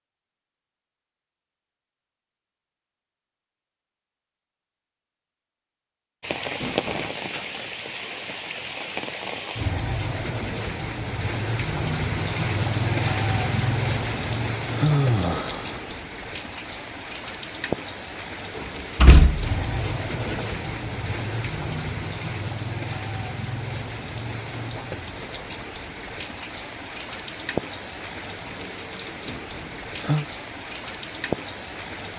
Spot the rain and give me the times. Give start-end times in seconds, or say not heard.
6.2-32.1.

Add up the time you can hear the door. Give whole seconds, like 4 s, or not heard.
2 s.